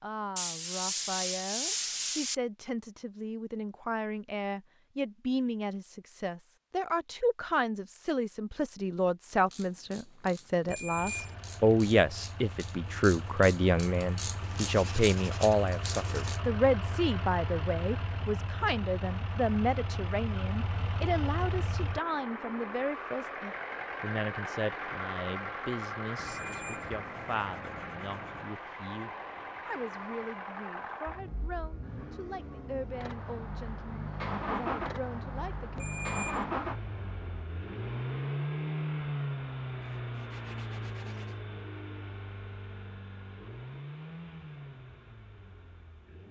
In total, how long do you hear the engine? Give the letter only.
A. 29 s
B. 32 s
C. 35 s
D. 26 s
C.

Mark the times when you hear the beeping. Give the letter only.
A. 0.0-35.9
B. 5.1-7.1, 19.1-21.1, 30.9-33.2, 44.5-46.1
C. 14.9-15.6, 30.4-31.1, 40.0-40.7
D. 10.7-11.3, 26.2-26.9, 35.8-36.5
D.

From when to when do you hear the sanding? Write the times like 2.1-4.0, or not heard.
0.3-2.4, 14.4-16.4, 26.1-28.5, 39.8-41.4.